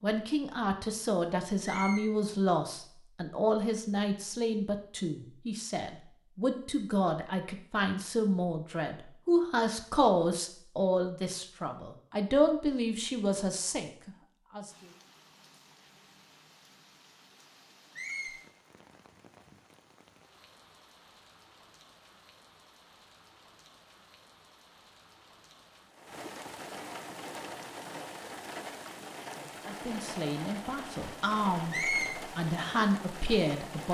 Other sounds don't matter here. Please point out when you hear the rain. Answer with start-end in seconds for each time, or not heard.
14.7-33.9.